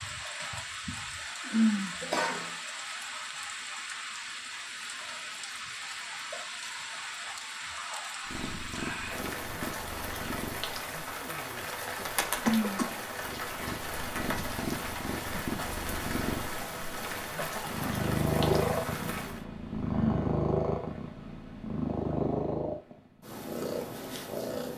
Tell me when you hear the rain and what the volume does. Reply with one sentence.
The rain can be heard from 0.0 to 19.4 s, at a steady volume.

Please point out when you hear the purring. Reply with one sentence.
You can hear the purring from 8.2 to 24.7 s.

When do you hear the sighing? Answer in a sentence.
The sighing can be heard from 1.4 to 1.9 s, from 12.3 to 12.9 s and from 19.9 to 20.4 s.